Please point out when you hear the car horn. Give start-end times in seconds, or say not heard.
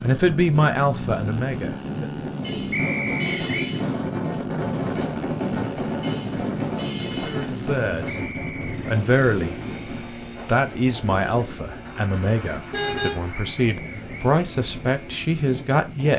2.4-3.9, 6.0-7.5, 12.7-13.3.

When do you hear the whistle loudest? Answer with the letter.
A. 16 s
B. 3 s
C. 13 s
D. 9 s
B.